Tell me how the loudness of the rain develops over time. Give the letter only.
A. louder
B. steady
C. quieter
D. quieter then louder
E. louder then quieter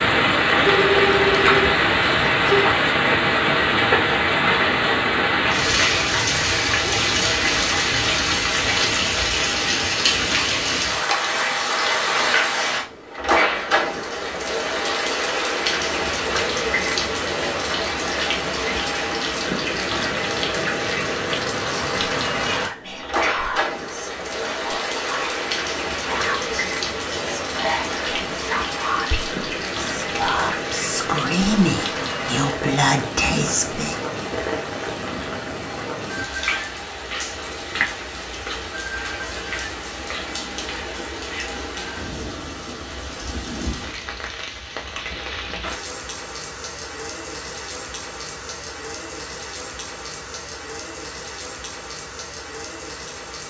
C.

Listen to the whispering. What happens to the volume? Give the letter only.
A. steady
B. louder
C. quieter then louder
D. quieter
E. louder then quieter
B.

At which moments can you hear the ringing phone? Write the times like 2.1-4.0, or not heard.
0.6-2.8.